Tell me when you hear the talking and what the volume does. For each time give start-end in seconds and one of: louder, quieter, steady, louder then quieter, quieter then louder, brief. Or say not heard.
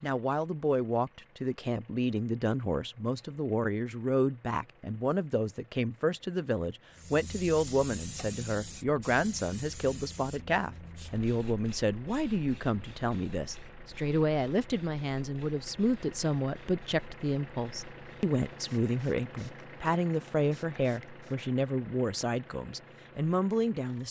0.0-24.0 steady.